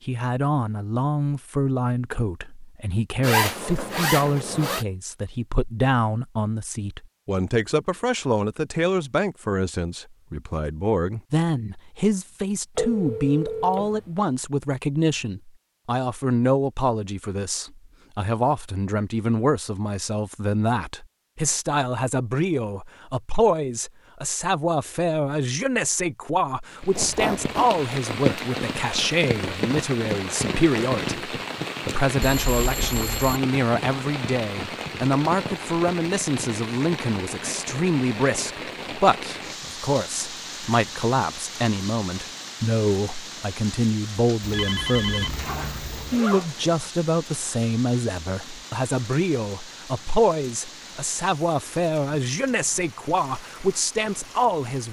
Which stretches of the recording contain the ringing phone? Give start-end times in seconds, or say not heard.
12.8-14.2, 32.2-33.4, 44.4-46.2.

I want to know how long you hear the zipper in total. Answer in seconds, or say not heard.
4 s.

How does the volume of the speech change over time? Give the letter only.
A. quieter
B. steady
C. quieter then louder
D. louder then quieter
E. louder
B.